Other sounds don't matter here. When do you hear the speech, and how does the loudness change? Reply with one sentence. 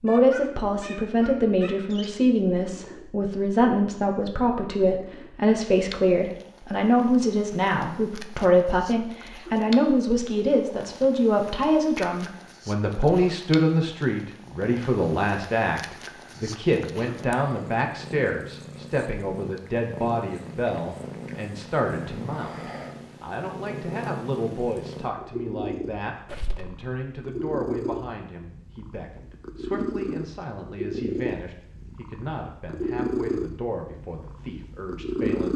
The speech can be heard from 0.0 to 35.5 s, getting quieter.